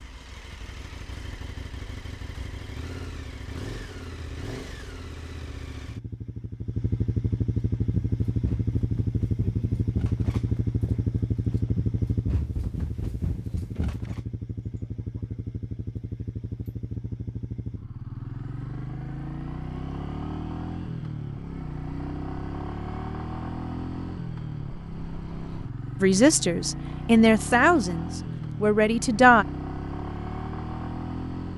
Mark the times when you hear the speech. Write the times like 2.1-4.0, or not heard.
26.0-29.4.